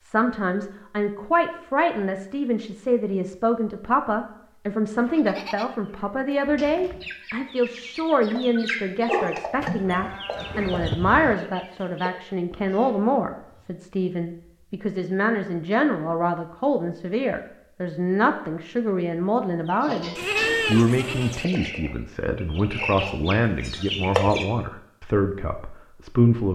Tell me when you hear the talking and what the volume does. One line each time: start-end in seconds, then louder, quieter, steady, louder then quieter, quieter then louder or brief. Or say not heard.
0.0-26.5 steady.